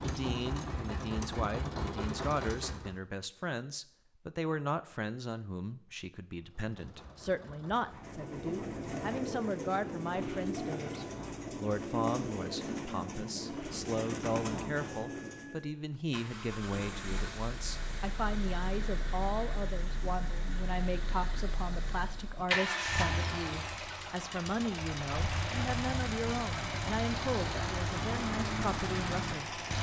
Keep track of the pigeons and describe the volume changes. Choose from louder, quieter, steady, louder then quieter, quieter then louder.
steady.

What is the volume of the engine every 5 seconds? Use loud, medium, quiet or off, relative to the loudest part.
loud, quiet, quiet, medium, loud, loud.